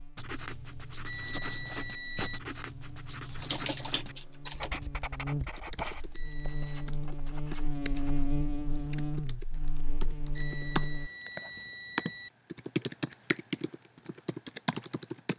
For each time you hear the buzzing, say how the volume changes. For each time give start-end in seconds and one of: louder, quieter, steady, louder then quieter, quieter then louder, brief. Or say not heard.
0.0-11.1 louder.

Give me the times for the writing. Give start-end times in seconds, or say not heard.
0.1-8.3.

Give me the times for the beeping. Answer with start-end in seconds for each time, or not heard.
1.1-2.4, 6.1-6.8, 10.3-12.3.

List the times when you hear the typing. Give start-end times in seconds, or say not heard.
3.4-15.3.